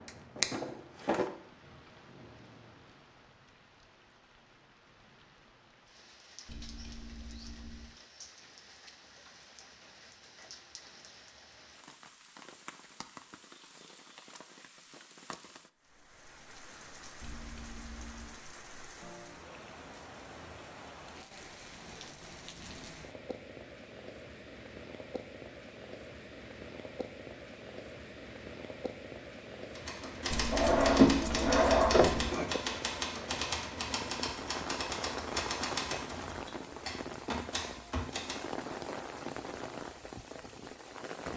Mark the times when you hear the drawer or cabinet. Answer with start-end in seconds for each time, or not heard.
0.4-1.2, 30.5-32.5.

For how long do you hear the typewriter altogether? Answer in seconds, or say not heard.
9 s.